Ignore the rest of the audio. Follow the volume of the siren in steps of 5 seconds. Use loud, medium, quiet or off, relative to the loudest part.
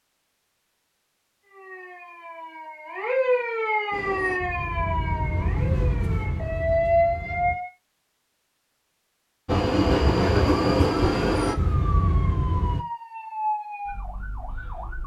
loud, loud, medium.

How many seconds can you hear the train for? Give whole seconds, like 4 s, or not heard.
7 s.